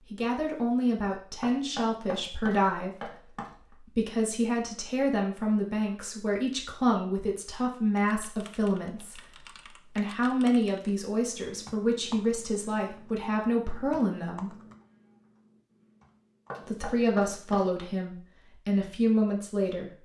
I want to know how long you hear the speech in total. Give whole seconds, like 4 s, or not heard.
18 s.